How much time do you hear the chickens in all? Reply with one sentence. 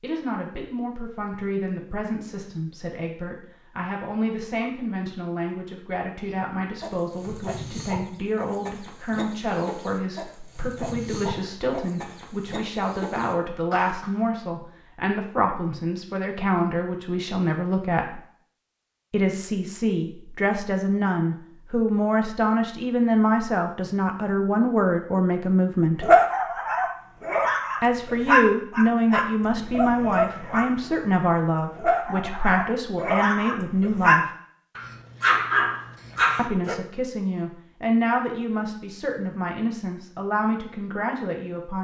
You can hear the chickens for 8 seconds altogether.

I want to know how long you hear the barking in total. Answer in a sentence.
You can hear the barking for 11 seconds altogether.